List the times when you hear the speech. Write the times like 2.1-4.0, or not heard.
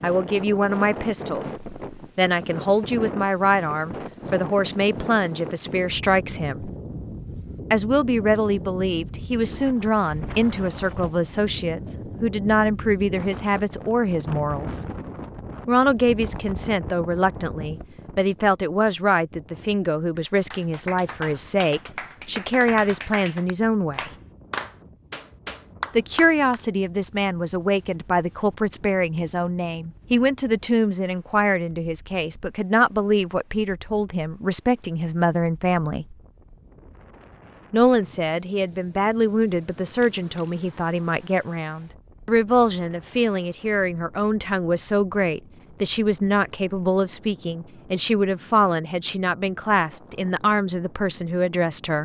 0.0-6.7, 7.7-14.8, 15.7-24.1, 25.9-36.0, 37.7-52.0.